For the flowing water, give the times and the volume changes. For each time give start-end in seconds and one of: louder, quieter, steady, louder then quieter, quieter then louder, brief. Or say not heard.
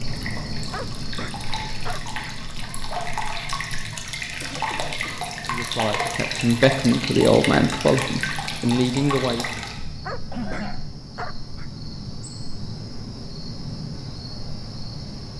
0.0-9.8 louder.